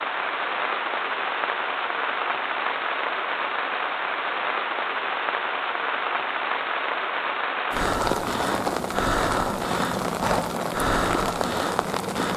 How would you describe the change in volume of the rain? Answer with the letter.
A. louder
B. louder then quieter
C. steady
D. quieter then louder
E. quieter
C.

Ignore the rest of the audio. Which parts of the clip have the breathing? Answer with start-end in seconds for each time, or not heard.
7.7-12.3.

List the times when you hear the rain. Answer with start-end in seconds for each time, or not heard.
0.0-12.3.